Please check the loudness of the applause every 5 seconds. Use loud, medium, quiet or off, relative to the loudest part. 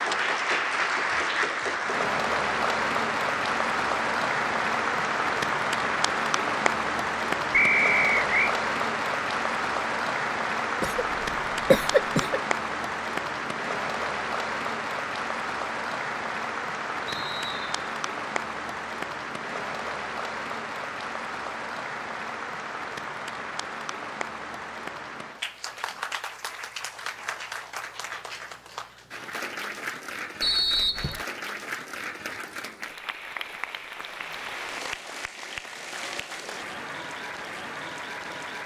loud, loud, loud, medium, medium, medium, medium, medium.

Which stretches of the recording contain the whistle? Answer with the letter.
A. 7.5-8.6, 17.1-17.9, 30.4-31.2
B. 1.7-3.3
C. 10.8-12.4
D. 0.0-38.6
A.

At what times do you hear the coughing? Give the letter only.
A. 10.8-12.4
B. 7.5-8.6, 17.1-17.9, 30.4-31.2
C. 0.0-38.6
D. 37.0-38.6
A.